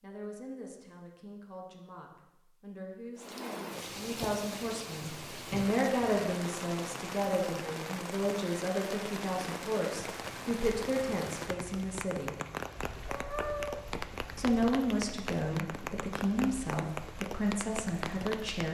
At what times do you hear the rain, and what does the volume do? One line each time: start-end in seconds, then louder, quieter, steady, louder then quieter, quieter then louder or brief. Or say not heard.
3.1-18.7 steady.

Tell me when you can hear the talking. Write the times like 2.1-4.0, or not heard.
0.0-12.3, 14.3-18.7.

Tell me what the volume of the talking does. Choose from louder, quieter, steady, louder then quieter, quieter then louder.
louder.